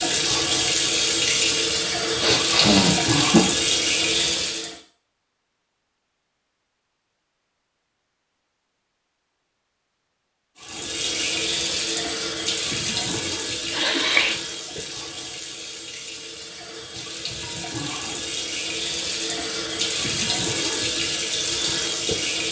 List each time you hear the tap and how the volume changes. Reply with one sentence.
You can hear the tap from 0.0 to 4.8 s, at a steady volume; and from 10.6 to 22.4 s, getting quieter then louder.